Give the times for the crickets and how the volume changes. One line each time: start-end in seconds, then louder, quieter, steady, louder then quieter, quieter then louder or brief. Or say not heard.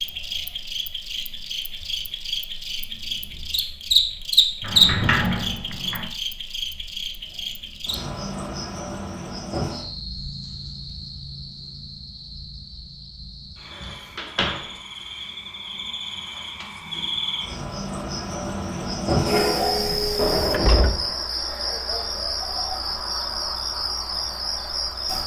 0.0-25.2 quieter then louder.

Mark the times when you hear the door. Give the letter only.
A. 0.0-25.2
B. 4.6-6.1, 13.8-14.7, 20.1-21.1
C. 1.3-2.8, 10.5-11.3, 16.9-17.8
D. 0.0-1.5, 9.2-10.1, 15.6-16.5
B.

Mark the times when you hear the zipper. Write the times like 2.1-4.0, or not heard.
not heard.